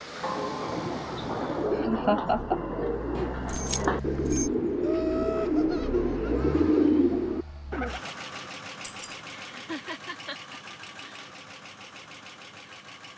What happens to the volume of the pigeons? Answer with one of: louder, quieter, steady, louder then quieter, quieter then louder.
louder.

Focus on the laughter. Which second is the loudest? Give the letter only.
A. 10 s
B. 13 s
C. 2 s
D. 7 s
C.